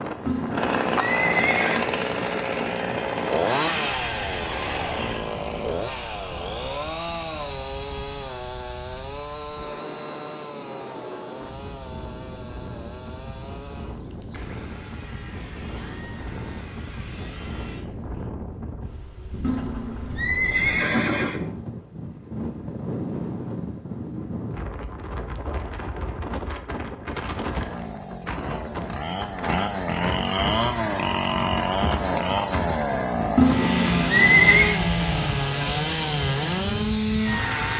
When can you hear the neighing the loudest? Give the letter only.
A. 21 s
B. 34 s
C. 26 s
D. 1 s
B.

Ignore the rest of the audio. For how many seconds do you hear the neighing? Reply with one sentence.
The neighing can be heard for 5 seconds in total.